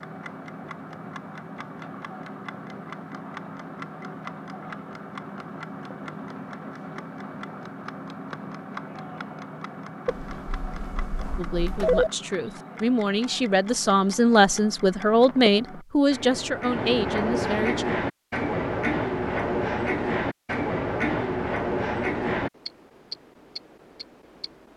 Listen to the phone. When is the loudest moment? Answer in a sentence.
The loudest moment of the phone is at 12 seconds.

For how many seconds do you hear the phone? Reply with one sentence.
The phone can be heard for 2 seconds in total.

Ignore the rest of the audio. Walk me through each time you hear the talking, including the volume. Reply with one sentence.
You can hear the talking from 11.3 to 17.9 s, getting louder then quieter.